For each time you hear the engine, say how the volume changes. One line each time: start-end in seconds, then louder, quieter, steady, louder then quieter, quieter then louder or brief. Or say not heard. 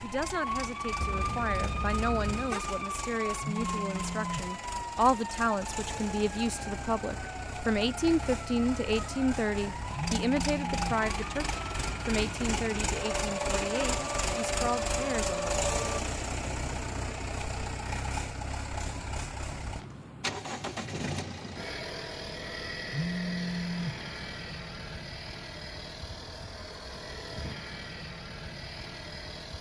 0.0-29.5 louder then quieter.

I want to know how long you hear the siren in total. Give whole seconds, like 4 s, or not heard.
16 s.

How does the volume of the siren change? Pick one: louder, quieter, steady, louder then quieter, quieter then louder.
quieter then louder.